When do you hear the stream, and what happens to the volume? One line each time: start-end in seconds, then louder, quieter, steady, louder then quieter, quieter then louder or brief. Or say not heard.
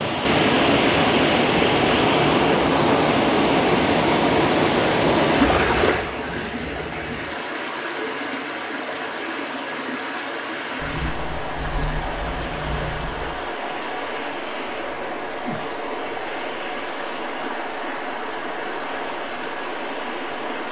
0.0-20.6 quieter.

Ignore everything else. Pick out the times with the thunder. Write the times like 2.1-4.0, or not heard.
10.8-13.5.